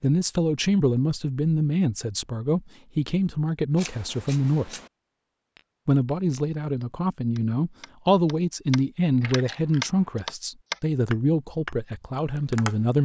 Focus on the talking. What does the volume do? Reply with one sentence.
The loudness of the talking stays about the same.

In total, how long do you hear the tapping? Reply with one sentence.
You can hear the tapping for 7 seconds altogether.